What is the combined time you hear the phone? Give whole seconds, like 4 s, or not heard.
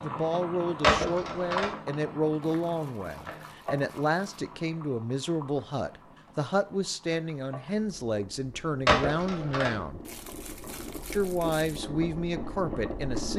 2 s.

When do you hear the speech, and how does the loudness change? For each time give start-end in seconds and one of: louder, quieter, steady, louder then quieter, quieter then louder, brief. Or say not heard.
0.0-10.0 steady
11.1-13.3 brief.